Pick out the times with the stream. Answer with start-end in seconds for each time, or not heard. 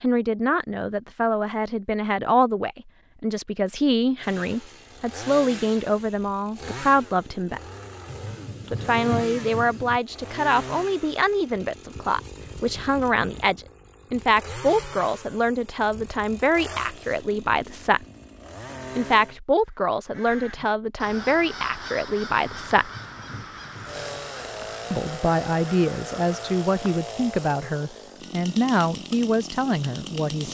not heard.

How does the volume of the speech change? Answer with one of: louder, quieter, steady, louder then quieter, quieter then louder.
steady.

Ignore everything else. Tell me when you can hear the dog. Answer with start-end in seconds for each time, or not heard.
not heard.